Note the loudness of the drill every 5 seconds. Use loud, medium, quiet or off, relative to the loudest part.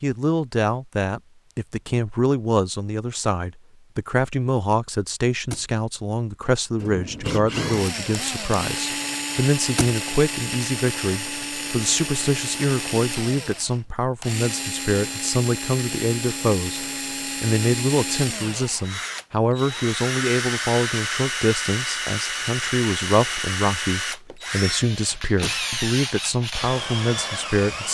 off, loud, loud, loud, loud, loud.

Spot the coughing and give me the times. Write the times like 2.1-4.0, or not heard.
not heard.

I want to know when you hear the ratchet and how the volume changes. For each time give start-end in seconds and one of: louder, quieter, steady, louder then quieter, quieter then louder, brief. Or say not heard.
not heard.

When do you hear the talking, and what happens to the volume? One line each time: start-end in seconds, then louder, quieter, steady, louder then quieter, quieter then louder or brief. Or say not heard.
0.0-27.8 steady.